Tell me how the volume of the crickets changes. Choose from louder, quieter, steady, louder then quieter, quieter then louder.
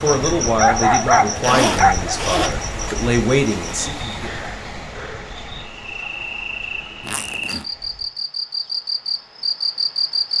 quieter then louder.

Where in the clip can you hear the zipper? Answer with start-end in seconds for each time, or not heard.
1.4-2.5, 7.0-7.7.